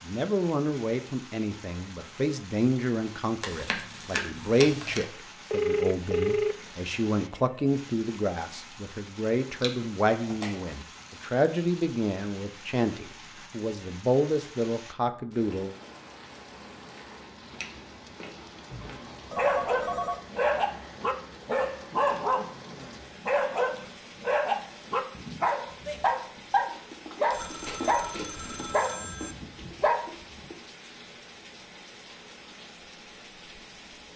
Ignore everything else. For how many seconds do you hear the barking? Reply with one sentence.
You can hear the barking for 12 seconds altogether.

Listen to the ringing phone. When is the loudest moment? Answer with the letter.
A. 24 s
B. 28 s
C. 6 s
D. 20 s
C.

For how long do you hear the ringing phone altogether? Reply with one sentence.
The ringing phone can be heard for 5 seconds in total.